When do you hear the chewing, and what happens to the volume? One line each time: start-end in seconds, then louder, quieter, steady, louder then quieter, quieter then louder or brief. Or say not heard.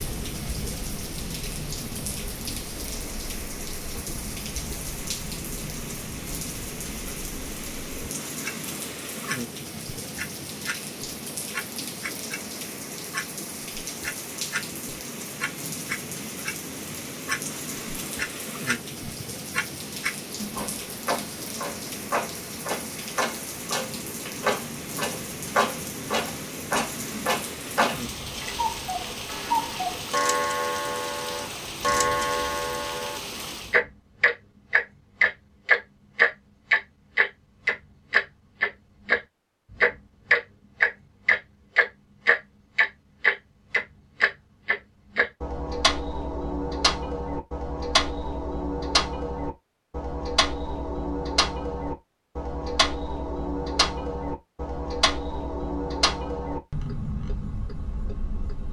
not heard.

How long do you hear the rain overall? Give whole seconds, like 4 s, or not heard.
34 s.